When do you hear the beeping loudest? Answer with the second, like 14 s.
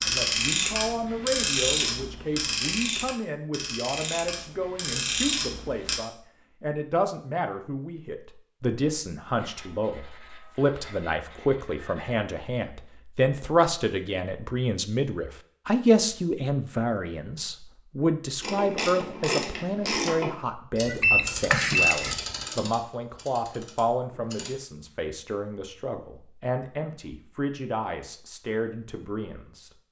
21 s.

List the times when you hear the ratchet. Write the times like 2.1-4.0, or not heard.
0.0-6.0, 18.4-24.5.